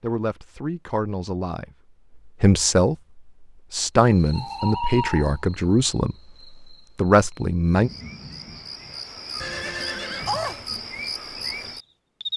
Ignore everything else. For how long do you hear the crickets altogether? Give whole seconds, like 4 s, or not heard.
8 s.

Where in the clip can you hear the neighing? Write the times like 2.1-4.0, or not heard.
9.4-10.7.